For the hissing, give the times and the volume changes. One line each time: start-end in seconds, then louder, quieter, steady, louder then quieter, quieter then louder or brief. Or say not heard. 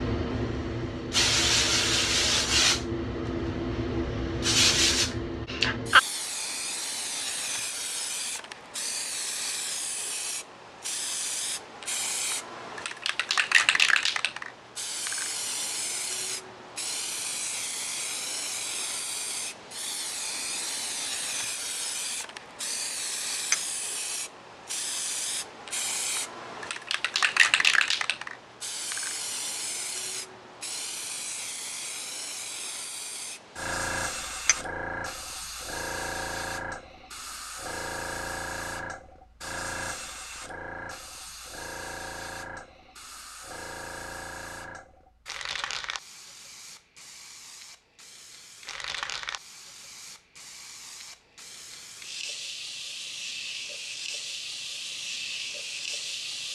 0.0-56.4 quieter.